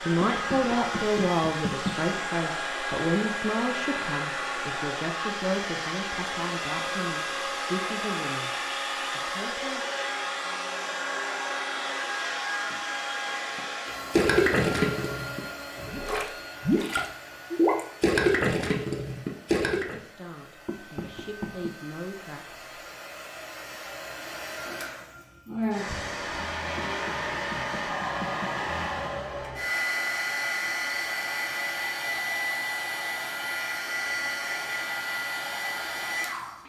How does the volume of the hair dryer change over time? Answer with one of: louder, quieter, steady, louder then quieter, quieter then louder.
quieter then louder.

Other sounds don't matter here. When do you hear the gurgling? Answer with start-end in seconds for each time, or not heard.
13.6-20.0.